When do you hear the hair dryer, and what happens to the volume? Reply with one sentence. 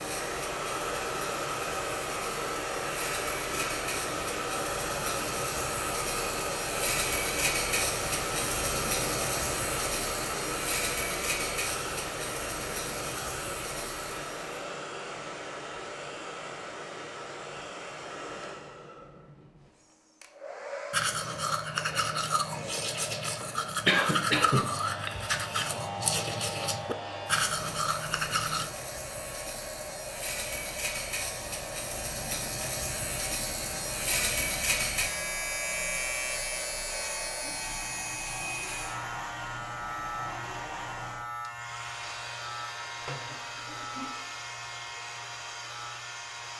The hair dryer can be heard from 0.0 to 46.5 s, getting quieter.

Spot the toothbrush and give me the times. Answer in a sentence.
The toothbrush can be heard from 20.9 to 28.7 s.